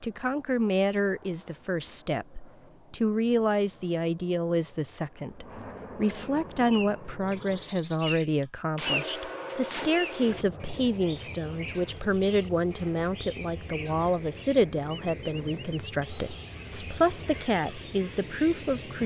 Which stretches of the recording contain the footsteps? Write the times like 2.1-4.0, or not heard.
not heard.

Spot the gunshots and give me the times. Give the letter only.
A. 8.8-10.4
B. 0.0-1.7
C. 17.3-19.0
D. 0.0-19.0
A.